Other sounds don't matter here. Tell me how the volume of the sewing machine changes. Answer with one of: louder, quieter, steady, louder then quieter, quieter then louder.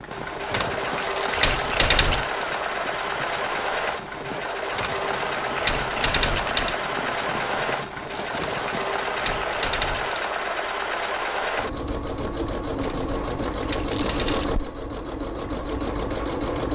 steady.